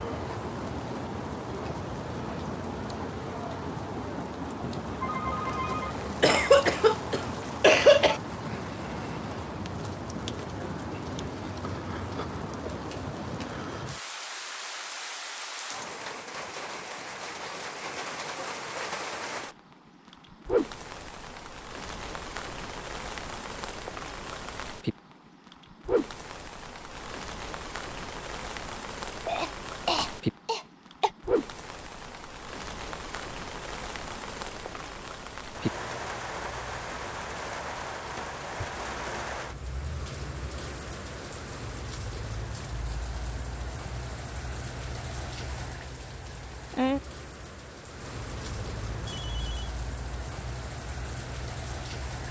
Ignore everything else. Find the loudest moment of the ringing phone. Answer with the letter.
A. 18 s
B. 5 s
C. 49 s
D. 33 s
B.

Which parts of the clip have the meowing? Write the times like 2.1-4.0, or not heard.
not heard.